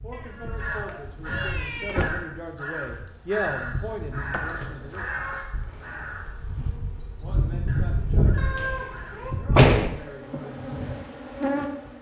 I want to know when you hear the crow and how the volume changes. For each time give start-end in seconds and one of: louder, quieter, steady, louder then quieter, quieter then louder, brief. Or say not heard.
0.6-9.2 quieter.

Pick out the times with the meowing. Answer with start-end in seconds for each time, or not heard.
0.1-2.0, 4.8-5.5, 8.3-9.3.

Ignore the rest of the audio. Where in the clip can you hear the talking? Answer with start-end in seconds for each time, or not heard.
0.0-5.3, 7.2-11.1.